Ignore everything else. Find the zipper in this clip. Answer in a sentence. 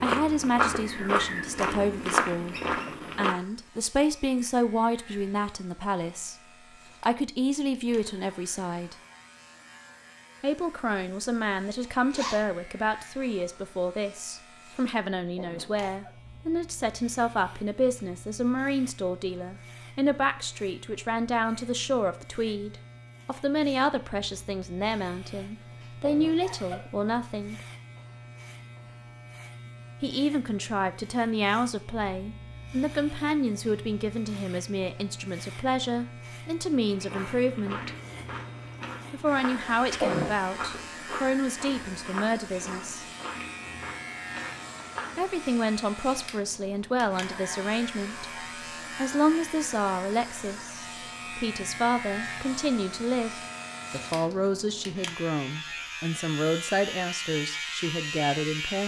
You can hear the zipper from 11.9 to 12.4 s.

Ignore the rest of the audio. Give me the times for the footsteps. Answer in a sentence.
You can hear the footsteps from 0.0 to 3.4 s and from 36.9 to 45.2 s.